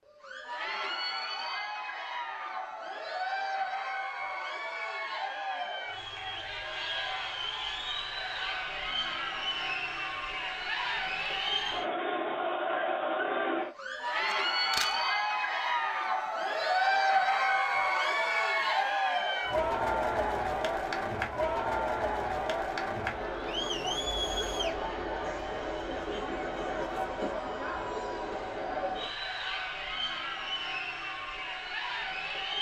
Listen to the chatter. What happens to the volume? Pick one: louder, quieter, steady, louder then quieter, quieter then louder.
louder then quieter.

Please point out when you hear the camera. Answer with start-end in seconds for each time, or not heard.
14.3-14.9.